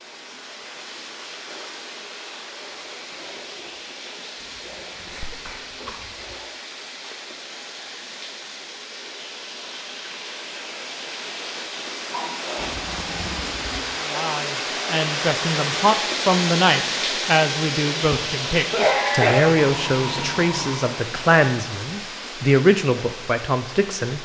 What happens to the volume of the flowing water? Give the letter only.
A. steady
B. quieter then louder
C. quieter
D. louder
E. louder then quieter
E.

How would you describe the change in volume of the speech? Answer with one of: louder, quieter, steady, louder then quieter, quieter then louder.
steady.